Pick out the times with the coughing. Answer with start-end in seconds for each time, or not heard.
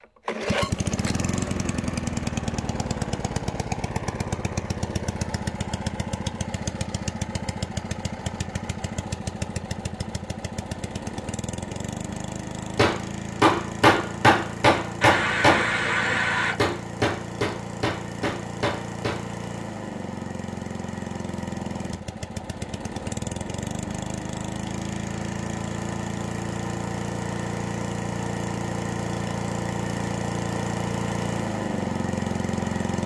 15.0-16.6.